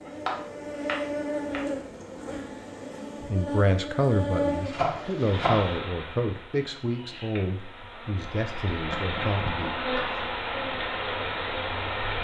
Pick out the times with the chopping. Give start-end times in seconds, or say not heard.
0.1-1.6, 4.5-5.8, 8.7-10.2.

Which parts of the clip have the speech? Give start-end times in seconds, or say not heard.
3.3-9.8.